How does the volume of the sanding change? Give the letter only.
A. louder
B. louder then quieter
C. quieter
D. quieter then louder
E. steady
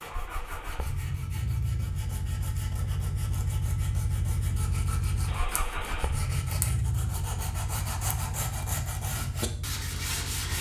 A.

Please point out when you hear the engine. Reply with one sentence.
You can hear the engine from 0.0 to 10.5 s.